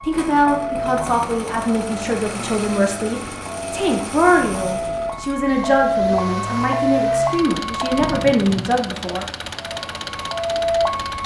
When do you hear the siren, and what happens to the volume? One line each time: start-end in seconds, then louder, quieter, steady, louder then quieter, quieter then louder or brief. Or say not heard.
0.0-8.3 quieter then louder
9.6-11.2 brief.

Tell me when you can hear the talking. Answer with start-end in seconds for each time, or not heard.
0.0-9.2.